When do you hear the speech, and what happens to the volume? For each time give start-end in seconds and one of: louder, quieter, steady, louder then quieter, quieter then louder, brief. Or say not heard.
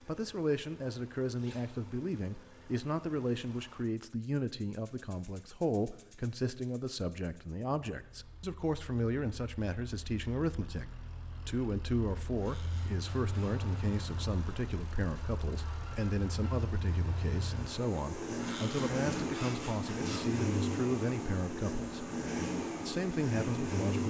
0.1-24.0 steady.